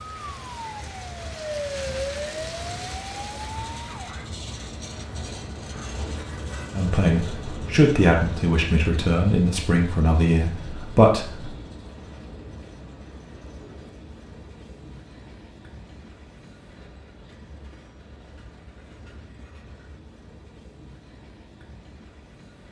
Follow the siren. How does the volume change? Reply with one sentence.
The loudness of the siren goes up, then down.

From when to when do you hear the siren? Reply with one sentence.
You can hear the siren from 0.0 to 4.3 s.